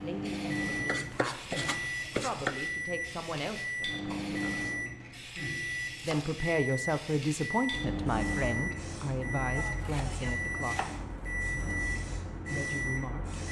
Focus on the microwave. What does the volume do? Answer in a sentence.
The volume of the microwave stays about the same.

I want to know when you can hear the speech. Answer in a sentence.
The speech can be heard from 0.0 to 4.7 s, from 6.0 to 10.8 s and from 12.5 to 13.4 s.